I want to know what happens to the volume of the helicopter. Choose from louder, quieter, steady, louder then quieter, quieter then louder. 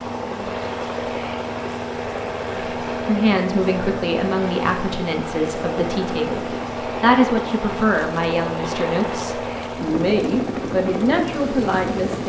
steady.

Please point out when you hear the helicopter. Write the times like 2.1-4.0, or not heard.
0.0-12.2.